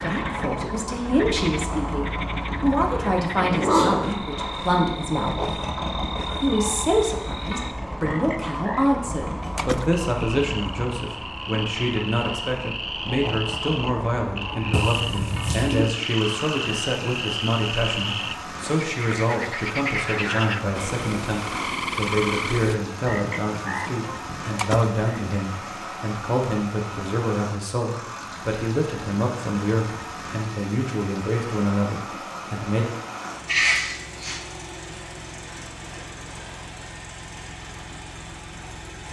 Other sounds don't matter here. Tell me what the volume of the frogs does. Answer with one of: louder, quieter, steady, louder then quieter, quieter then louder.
louder.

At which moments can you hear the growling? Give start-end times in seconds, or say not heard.
3.4-4.2, 14.7-15.8, 33.5-34.4.